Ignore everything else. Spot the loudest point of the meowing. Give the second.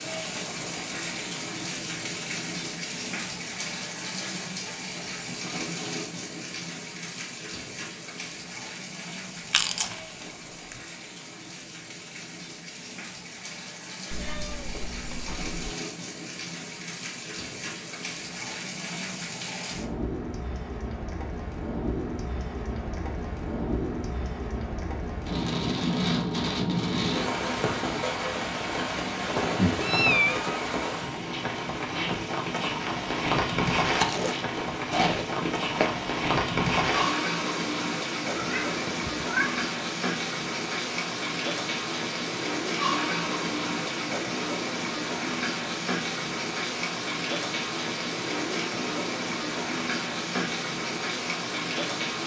30 s.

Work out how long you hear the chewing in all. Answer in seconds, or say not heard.
3 s.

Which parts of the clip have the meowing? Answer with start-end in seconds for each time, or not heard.
14.1-15.7, 29.8-30.6, 38.4-39.7.